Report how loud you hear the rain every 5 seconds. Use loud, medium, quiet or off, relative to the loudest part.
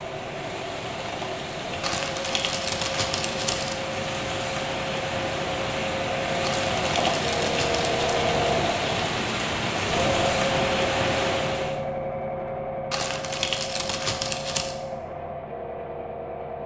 medium, loud, loud, off.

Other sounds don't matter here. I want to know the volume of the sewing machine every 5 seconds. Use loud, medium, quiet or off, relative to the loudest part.
medium, loud, loud, medium.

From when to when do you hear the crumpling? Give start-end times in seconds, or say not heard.
1.8-3.8, 6.4-8.0, 12.9-14.8.